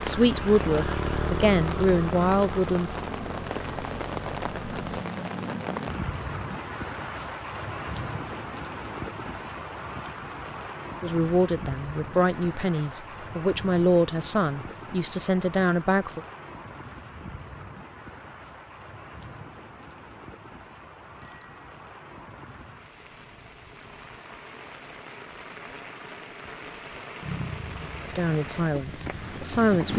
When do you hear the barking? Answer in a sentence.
You can't hear the barking here.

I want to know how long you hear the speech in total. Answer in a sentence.
You can hear the speech for 10 seconds altogether.